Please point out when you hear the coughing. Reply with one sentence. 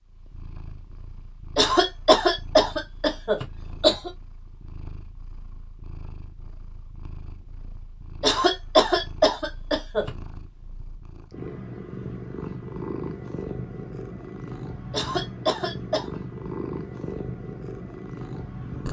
You can hear the coughing from 1.6 to 4.1 s, from 8.2 to 10.1 s and from 14.9 to 16.1 s.